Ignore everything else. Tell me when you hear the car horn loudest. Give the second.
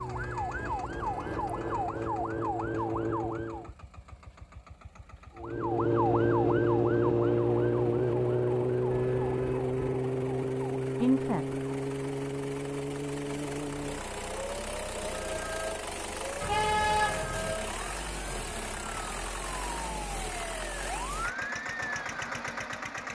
17 s.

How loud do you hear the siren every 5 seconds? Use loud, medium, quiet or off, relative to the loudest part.
medium, loud, medium, quiet, quiet.